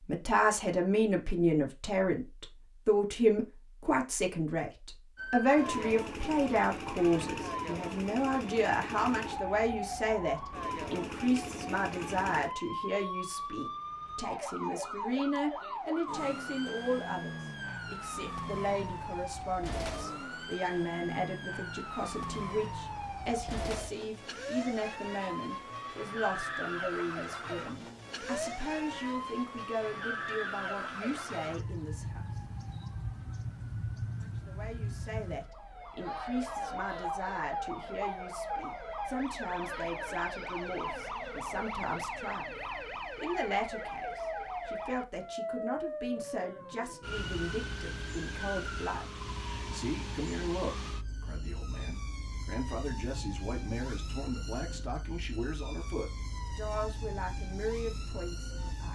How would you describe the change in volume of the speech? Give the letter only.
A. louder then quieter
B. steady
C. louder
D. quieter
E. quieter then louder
D.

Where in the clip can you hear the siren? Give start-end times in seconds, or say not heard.
5.2-58.8.